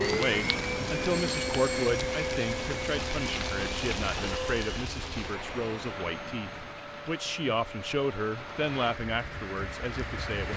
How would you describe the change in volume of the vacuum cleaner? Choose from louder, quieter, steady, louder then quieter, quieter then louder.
quieter.